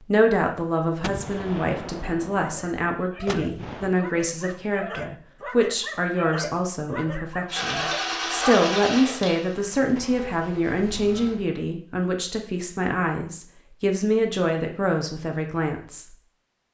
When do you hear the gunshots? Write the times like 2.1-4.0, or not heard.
1.0-4.0.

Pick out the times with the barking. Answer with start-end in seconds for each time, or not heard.
2.4-8.6.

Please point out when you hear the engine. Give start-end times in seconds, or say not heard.
7.5-11.4.